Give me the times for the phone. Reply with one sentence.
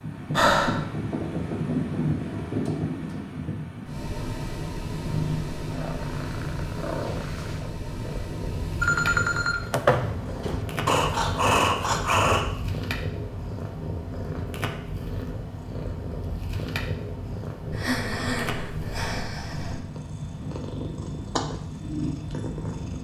You can hear the phone from 8.8 to 10.7 s.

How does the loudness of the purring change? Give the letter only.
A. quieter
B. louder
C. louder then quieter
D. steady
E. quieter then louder
D.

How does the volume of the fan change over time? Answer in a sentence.
The volume of the fan goes down.